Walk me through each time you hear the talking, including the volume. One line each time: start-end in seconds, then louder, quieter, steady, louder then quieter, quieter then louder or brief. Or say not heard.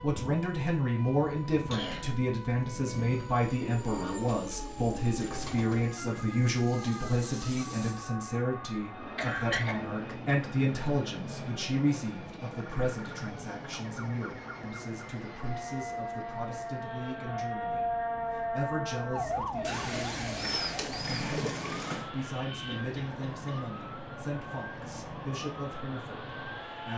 0.0-26.9 quieter.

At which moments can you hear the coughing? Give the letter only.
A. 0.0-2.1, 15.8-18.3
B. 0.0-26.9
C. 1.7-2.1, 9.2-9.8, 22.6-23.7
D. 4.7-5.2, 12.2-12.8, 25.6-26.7
C.